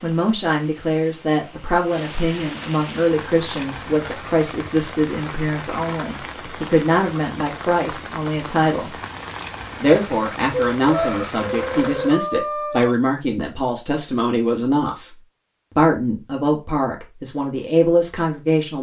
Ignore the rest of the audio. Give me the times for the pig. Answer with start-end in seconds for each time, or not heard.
not heard.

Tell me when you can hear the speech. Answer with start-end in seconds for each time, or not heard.
0.0-8.9, 9.8-15.2, 15.8-18.7.